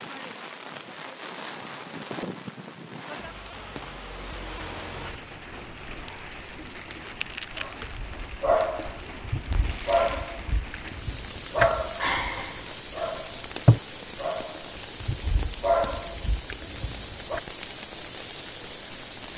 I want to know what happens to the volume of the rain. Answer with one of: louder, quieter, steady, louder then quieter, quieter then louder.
steady.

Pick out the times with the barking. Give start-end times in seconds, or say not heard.
7.5-17.4.